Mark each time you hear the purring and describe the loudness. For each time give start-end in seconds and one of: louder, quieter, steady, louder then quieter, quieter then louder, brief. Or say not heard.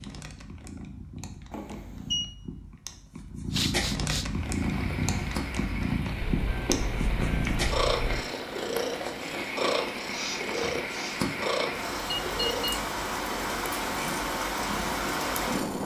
0.0-15.8 louder then quieter.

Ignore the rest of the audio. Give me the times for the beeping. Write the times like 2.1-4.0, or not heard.
1.5-2.2, 6.2-8.2, 12.1-12.8.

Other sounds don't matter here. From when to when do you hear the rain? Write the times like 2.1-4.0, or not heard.
4.2-15.8.